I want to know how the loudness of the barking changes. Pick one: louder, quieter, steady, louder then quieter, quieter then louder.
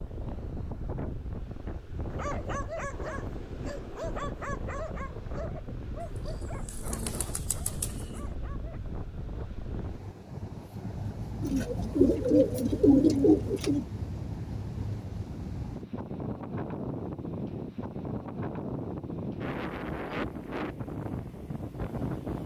quieter.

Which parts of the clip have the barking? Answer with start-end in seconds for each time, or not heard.
2.1-8.8.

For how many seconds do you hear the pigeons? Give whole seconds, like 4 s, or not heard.
4 s.